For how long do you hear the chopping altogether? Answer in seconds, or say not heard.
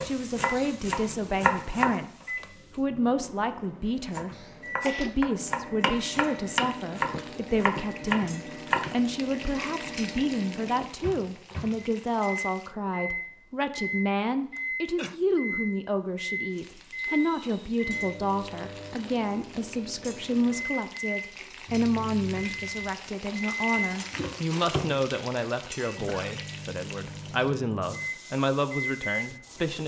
7 s.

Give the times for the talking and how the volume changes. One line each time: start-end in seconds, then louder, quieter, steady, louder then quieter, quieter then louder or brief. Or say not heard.
0.0-29.8 steady.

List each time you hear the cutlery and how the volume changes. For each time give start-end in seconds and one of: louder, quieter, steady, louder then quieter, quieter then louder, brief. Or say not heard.
not heard.